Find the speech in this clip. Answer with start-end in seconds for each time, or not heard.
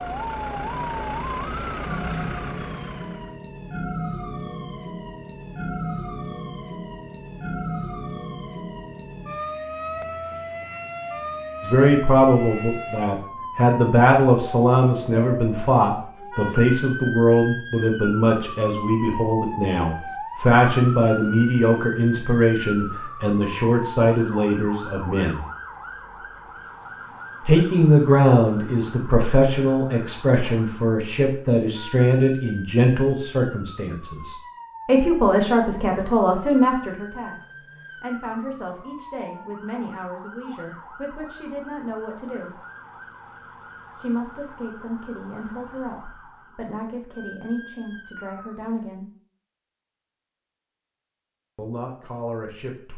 11.6-25.4, 27.4-42.6, 44.0-49.1, 51.5-52.9.